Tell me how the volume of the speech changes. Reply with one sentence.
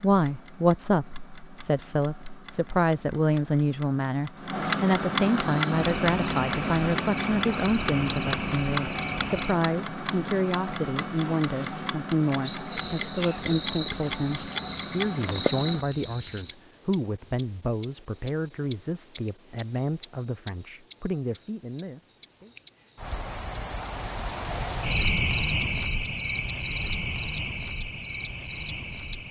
The loudness of the speech goes down.